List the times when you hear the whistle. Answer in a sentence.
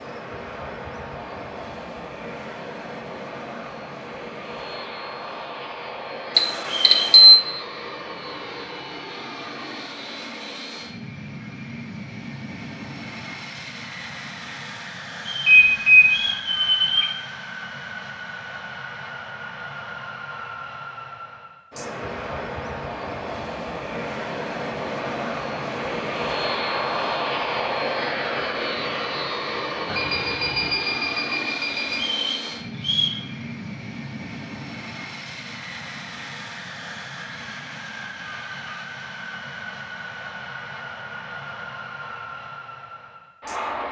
You can hear the whistle from 6.8 to 7.2 s, from 15.2 to 16.5 s and from 31.9 to 33.2 s.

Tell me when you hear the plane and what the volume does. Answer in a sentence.
The plane can be heard from 0.0 to 43.8 s, getting louder then quieter.